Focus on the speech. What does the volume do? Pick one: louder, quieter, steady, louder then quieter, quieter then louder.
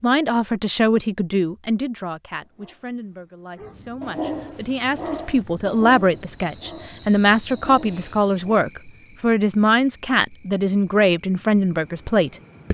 quieter then louder.